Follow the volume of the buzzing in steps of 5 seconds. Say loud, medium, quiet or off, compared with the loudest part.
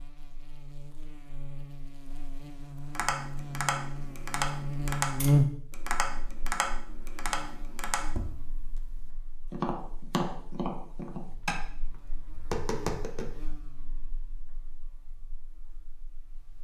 medium, loud, quiet, quiet.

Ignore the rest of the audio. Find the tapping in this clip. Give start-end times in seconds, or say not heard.
3.0-13.6.